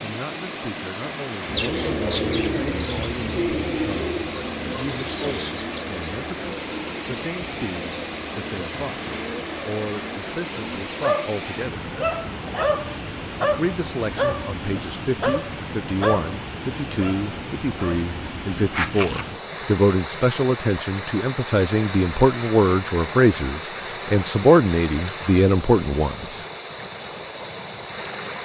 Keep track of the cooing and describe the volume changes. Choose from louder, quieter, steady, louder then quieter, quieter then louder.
quieter.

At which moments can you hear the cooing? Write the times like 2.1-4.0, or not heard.
1.4-10.9.